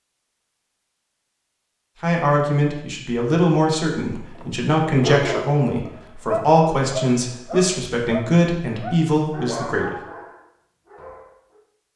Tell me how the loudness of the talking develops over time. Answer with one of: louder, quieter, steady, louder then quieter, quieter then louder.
steady.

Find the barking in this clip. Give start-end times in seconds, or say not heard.
4.3-11.6.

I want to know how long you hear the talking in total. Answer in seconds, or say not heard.
8 s.